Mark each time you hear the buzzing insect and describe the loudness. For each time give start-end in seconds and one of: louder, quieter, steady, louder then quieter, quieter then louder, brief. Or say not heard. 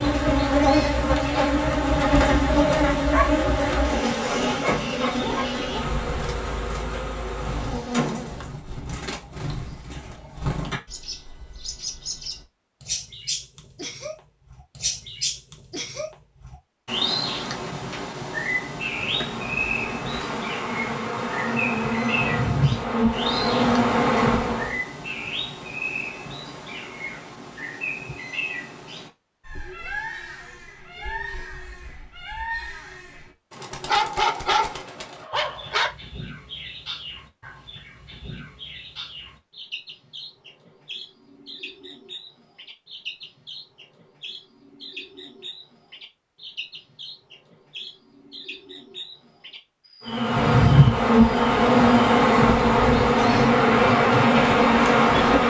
0.0-8.6 quieter
18.9-24.8 louder
50.0-55.4 steady.